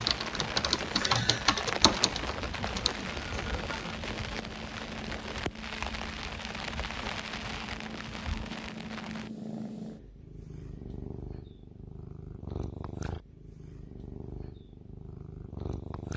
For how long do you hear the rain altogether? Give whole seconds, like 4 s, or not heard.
9 s.